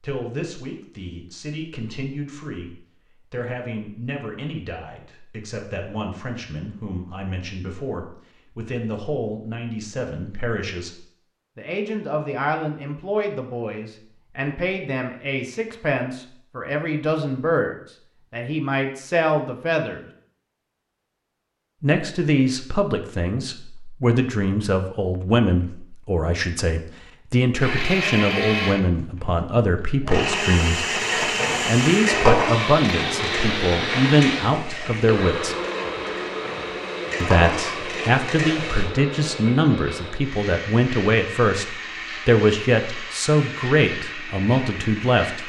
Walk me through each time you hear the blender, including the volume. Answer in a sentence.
You can hear the blender from 27.6 to 45.4 s, getting quieter.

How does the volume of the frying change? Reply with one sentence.
The loudness of the frying goes down, then up.